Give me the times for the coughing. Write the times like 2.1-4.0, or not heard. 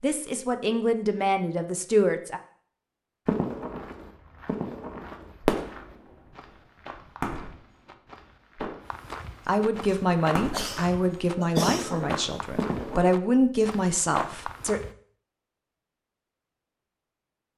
9.8-12.2.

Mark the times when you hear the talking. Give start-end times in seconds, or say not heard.
0.0-2.4, 9.4-14.8.